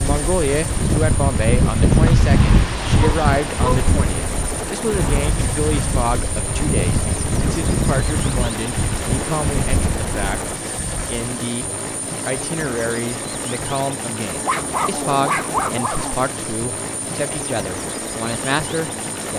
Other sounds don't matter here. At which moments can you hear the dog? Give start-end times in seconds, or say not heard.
3.0-3.9, 14.4-16.2.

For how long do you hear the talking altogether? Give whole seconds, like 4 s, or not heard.
19 s.